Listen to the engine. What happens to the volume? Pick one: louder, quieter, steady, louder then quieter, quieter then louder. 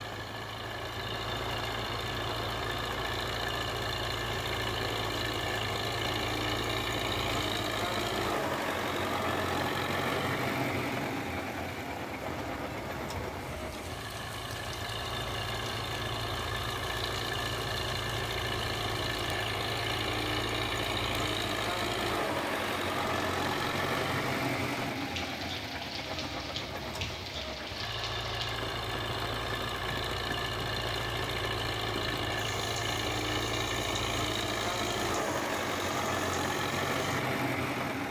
steady.